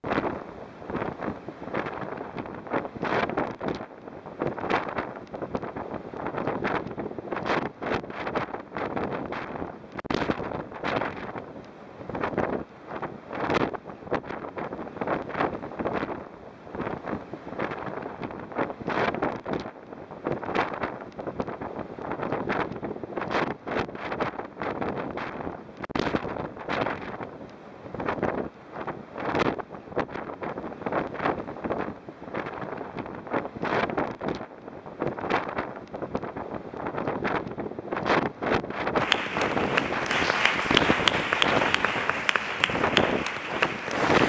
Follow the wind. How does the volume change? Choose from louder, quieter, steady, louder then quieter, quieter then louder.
steady.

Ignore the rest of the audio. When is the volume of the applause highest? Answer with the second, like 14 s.
41 s.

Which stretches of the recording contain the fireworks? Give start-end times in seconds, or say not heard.
not heard.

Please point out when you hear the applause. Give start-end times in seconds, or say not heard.
39.0-44.2.